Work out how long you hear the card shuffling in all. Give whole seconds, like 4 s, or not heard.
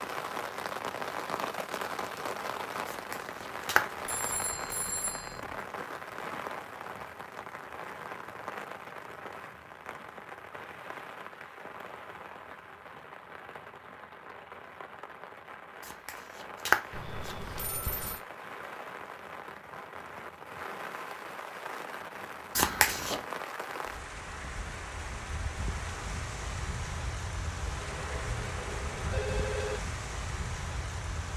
3 s.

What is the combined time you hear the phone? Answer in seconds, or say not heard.
5 s.